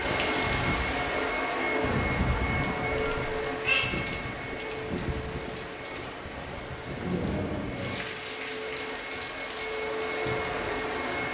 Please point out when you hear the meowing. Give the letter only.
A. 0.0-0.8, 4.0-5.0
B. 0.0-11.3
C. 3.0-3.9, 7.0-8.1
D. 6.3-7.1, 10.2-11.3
C.